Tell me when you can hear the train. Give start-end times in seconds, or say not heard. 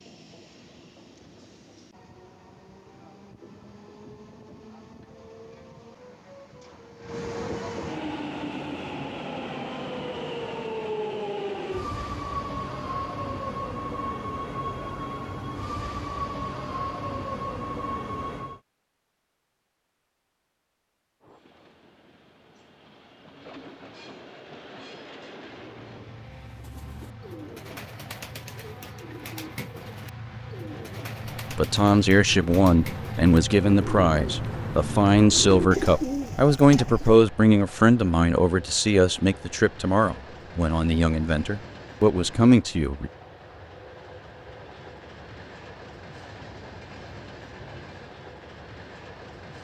0.0-18.6, 21.2-49.5.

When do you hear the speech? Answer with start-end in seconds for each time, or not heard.
31.5-43.1.